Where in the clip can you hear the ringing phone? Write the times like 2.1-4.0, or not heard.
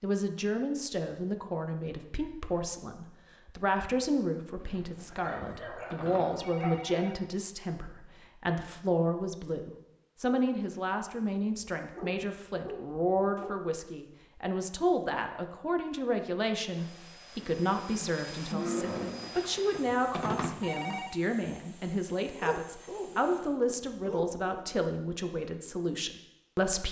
4.6-7.2, 18.8-21.1.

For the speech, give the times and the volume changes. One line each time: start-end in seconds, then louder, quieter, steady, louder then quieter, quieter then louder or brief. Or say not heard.
0.0-26.8 steady.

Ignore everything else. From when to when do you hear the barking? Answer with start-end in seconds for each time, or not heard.
5.2-7.0, 11.6-13.6, 22.4-24.6.